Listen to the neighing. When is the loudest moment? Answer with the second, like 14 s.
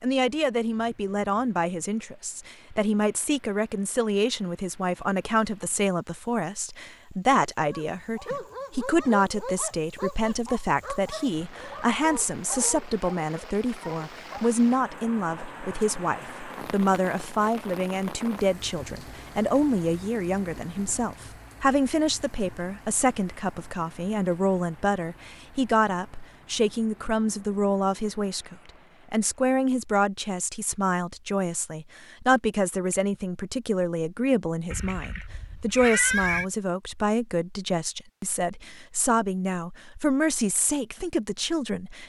36 s.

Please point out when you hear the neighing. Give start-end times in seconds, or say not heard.
34.7-36.5.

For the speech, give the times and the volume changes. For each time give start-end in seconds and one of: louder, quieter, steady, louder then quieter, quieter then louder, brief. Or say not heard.
0.0-42.0 steady.